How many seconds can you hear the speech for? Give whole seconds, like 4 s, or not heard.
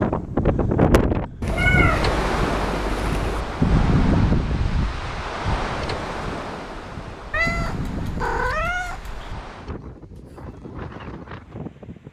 not heard.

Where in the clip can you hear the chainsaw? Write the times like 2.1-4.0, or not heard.
not heard.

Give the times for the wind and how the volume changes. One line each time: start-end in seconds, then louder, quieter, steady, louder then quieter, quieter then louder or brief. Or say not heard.
0.0-12.0 quieter.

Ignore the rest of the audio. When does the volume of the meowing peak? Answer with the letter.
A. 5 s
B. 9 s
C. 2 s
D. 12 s
C.